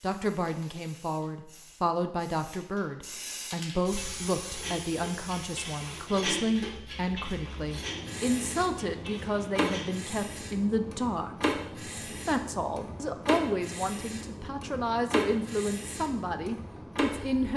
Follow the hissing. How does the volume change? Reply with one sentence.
The loudness of the hissing goes up.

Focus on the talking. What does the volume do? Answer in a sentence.
The volume of the talking stays about the same.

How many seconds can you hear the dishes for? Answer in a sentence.
You can hear the dishes for 6 seconds altogether.